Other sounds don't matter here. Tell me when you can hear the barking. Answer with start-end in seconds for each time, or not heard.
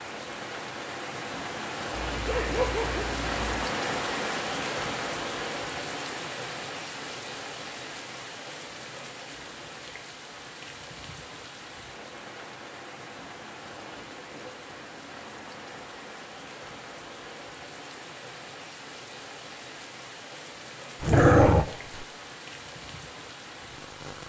2.1-3.6, 21.0-22.1.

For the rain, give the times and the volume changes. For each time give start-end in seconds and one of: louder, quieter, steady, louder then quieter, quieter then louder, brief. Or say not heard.
0.0-24.2 quieter.